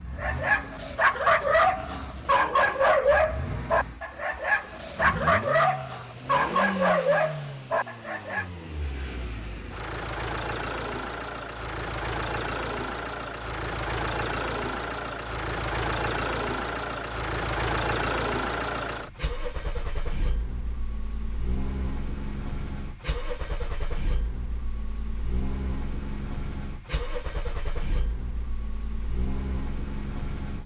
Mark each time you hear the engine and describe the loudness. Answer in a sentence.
The engine can be heard from 0.0 to 30.6 s, getting louder then quieter.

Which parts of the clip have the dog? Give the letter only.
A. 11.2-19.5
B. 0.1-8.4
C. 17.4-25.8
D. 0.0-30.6
B.